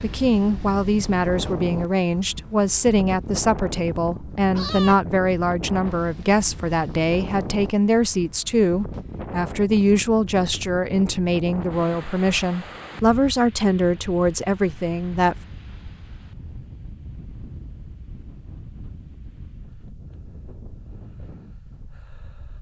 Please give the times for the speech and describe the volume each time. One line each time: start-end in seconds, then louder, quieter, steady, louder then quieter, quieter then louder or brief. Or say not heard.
0.0-15.3 steady.